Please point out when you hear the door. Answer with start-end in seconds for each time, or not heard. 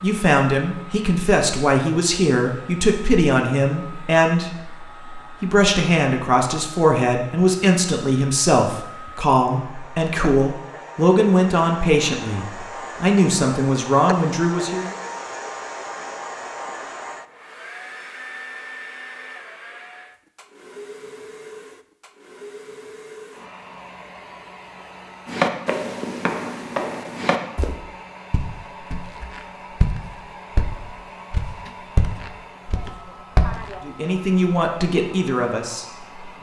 31.1-31.8.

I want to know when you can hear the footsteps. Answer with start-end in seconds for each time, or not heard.
25.2-33.8.